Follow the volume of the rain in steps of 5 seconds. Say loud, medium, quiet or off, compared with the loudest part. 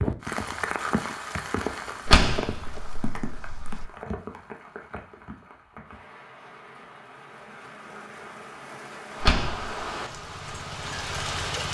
loud, medium, loud.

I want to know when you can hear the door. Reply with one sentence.
The door can be heard from 2.0 to 3.9 s and from 9.2 to 9.8 s.